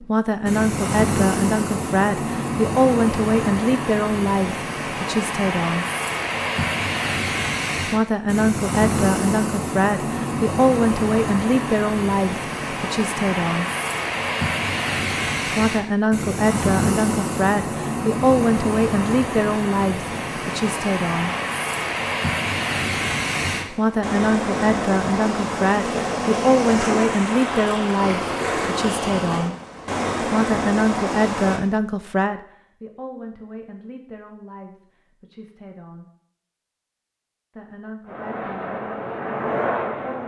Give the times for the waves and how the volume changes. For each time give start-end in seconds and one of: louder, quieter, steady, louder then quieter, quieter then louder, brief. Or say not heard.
0.0-31.6 steady.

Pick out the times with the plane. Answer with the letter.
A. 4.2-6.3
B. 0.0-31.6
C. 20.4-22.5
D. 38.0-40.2
D.